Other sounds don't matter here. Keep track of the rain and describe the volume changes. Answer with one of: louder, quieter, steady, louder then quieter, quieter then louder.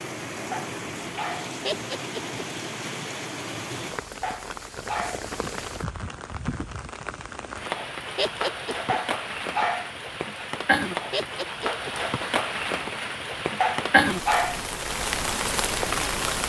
louder.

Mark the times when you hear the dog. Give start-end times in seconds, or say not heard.
0.5-1.6, 4.2-5.2, 8.8-9.9, 13.6-14.7.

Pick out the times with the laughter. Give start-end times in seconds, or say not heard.
1.6-2.4, 8.2-8.9, 11.1-11.9.